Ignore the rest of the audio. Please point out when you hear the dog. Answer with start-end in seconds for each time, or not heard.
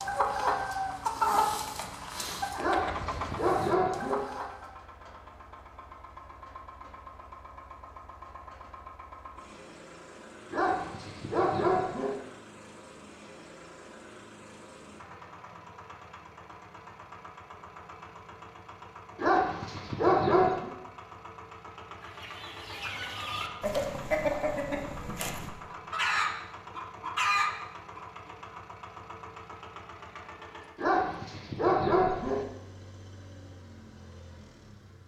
2.5-4.2, 10.5-12.2, 19.1-20.7, 30.8-32.5.